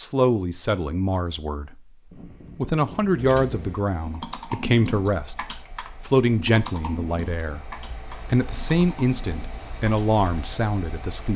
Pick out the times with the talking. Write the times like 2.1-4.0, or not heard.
0.0-1.9, 2.5-5.4, 6.0-11.3.